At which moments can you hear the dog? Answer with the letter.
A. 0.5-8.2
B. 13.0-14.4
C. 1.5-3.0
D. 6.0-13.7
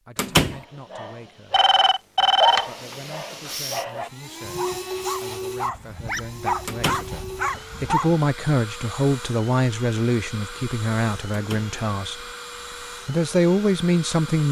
A.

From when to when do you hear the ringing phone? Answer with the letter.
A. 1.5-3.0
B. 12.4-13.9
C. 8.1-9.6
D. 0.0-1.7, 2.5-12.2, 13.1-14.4
A.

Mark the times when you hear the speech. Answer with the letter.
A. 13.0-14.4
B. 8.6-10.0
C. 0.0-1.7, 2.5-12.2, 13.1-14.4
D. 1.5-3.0
C.